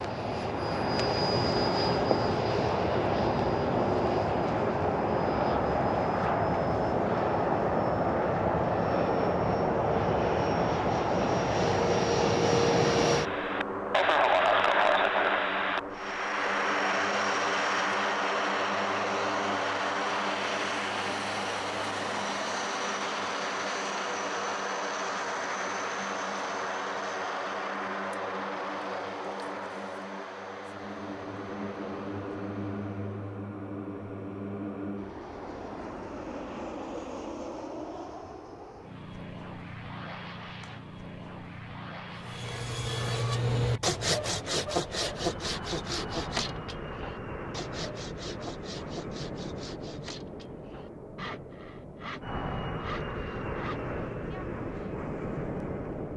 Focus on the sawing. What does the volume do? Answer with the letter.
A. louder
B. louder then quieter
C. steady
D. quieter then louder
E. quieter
E.